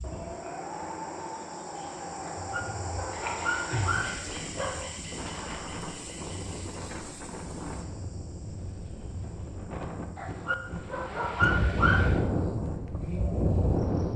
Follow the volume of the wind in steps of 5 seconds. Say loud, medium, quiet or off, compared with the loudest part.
medium, medium, loud.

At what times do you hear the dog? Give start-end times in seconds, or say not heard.
2.4-5.0, 10.2-12.2.